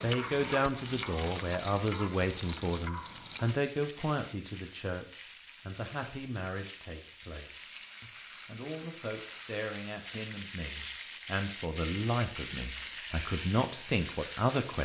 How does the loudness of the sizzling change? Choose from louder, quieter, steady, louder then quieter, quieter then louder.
quieter then louder.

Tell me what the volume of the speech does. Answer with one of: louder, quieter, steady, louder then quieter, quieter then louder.
quieter then louder.